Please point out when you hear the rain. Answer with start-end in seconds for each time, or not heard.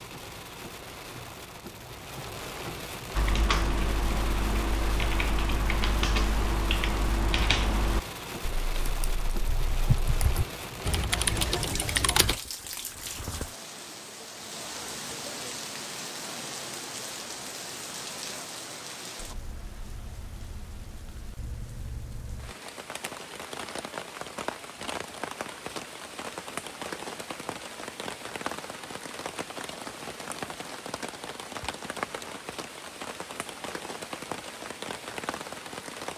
0.0-36.1.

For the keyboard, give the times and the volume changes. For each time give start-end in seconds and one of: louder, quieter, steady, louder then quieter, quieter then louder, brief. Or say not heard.
3.1-12.3 steady.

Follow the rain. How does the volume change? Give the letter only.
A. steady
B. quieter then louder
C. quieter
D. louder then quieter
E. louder
A.